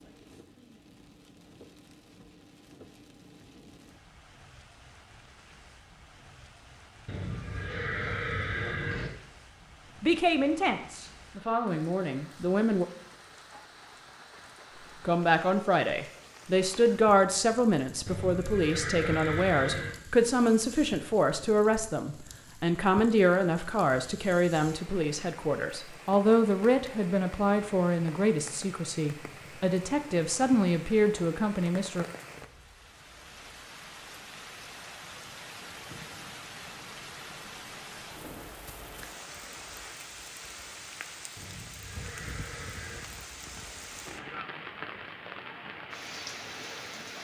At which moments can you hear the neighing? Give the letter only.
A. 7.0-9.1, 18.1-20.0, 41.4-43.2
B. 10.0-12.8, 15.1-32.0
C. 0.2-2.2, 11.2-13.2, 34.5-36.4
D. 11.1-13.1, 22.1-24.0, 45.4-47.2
A.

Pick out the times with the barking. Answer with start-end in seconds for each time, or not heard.
not heard.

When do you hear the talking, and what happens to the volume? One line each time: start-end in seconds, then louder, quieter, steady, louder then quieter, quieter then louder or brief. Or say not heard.
10.0-12.8 brief
15.1-32.0 steady.